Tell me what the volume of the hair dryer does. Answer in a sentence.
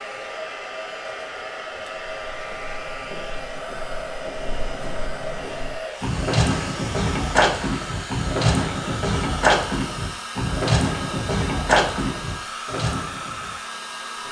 The volume of the hair dryer stays about the same.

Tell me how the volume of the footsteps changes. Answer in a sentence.
The volume of the footsteps goes up.